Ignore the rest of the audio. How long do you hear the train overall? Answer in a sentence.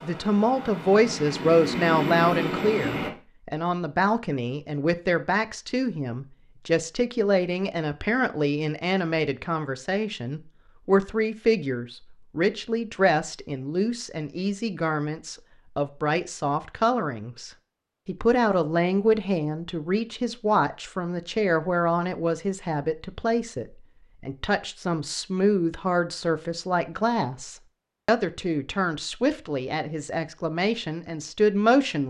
You can hear the train for 3 seconds altogether.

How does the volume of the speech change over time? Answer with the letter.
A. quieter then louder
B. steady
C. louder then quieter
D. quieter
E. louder
B.